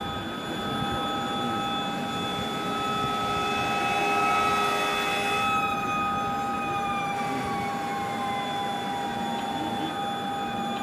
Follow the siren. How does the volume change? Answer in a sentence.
The volume of the siren goes up, then down.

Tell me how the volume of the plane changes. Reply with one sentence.
The volume of the plane stays about the same.